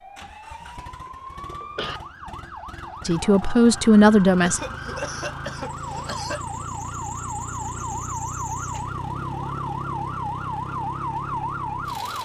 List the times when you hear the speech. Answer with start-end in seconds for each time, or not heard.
3.0-4.6.